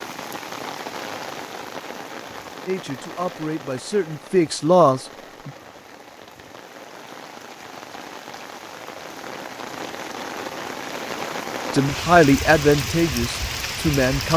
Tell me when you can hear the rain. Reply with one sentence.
The rain can be heard from 0.0 to 14.3 s.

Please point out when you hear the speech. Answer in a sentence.
The speech can be heard from 2.6 to 5.5 s and from 11.7 to 14.3 s.